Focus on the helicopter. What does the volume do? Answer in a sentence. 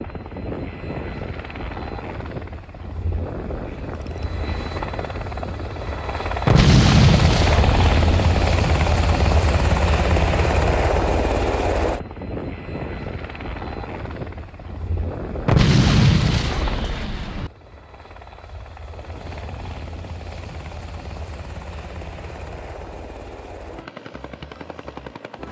The volume of the helicopter goes up, then down.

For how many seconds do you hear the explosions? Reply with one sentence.
The explosions can be heard for 4 seconds in total.